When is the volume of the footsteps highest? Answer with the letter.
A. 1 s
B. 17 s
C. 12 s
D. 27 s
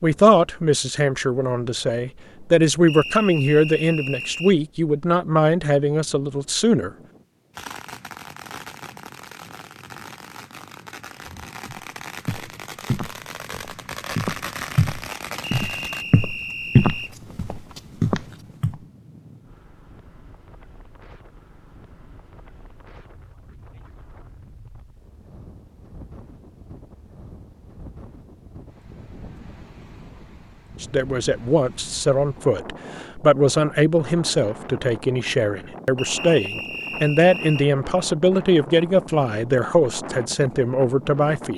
B.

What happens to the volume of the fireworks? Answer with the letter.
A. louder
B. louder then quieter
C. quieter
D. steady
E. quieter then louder
A.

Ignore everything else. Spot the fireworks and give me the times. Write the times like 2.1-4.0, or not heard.
7.5-16.1.